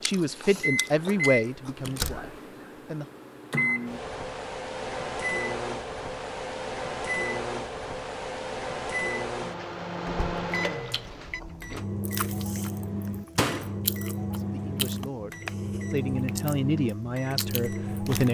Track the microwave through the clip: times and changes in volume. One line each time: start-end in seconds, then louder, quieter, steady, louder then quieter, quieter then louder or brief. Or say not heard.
0.0-18.2 steady.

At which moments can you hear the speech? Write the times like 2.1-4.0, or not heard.
0.0-3.0, 14.3-18.2.